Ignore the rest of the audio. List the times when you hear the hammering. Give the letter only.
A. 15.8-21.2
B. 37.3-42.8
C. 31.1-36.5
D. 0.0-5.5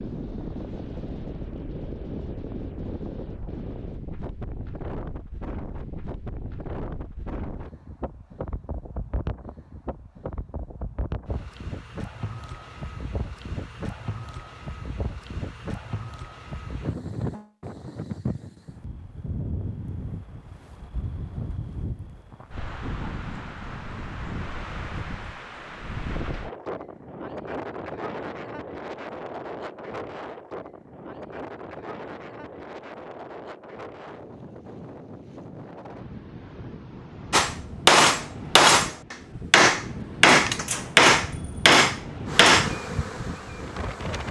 B.